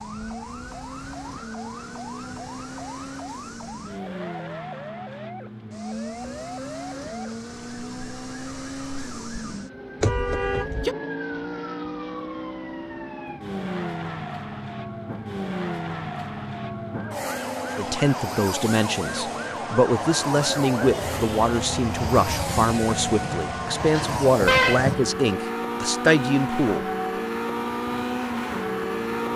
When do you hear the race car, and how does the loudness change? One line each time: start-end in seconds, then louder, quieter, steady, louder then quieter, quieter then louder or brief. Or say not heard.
0.0-29.3 louder.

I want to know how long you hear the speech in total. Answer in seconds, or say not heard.
9 s.